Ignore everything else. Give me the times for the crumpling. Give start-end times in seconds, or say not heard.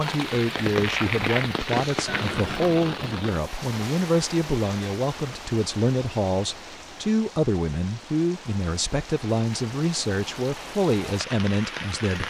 0.2-2.3.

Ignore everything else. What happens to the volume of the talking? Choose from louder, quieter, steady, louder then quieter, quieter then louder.
steady.